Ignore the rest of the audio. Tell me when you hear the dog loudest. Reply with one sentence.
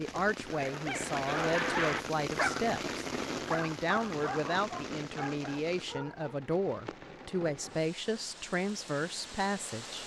The loudest moment of the dog is at 2 seconds.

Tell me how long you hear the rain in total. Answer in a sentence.
You can hear the rain for 10 seconds altogether.